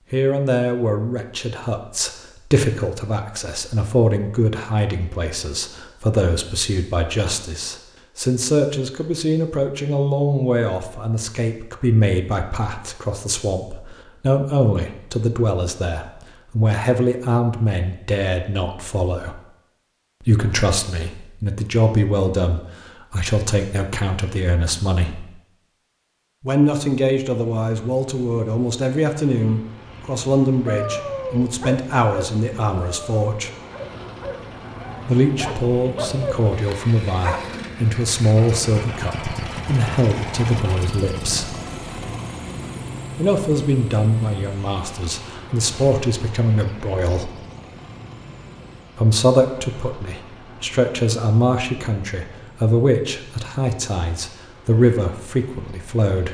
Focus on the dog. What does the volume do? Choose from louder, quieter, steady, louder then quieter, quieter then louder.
quieter then louder.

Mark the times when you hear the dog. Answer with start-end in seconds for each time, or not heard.
30.6-37.6.